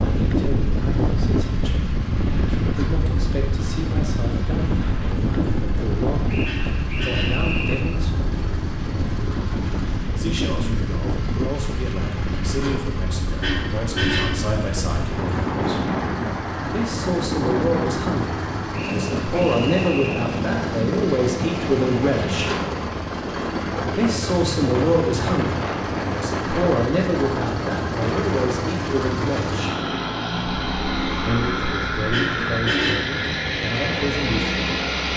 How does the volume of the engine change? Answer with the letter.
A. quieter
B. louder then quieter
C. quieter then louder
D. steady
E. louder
E.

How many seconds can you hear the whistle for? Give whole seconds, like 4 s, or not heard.
3 s.